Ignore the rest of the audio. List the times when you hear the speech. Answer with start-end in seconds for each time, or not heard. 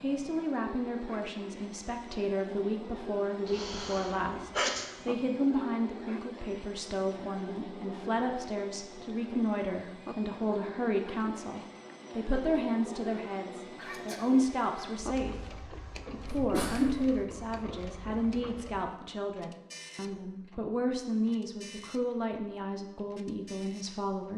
0.0-24.3.